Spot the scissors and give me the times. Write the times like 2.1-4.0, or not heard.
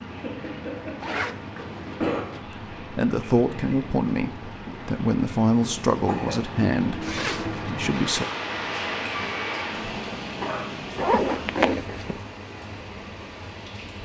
not heard.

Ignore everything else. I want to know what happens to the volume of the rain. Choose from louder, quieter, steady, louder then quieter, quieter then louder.
louder then quieter.